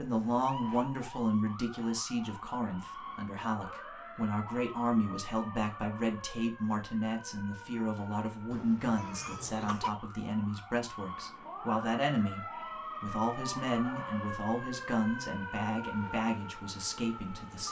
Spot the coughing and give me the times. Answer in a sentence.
You can hear the coughing from 8.5 to 9.9 s.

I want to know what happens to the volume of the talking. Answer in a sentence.
The loudness of the talking stays about the same.